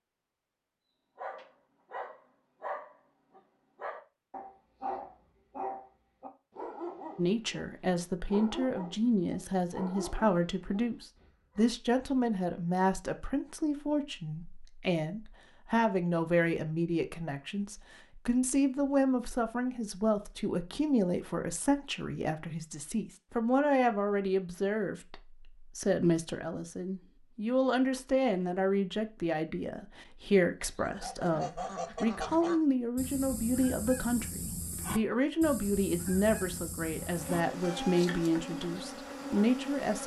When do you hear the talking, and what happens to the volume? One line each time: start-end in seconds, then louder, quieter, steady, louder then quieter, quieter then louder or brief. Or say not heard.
7.2-40.0 steady.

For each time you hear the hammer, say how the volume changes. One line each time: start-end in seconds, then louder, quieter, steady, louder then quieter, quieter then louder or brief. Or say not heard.
not heard.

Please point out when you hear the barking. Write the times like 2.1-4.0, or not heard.
1.1-11.7.